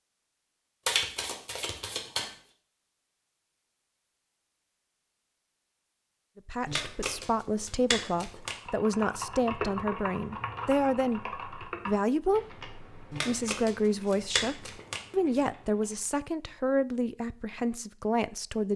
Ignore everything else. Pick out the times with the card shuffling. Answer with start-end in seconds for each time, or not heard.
0.8-2.3, 6.7-8.6, 13.1-15.0.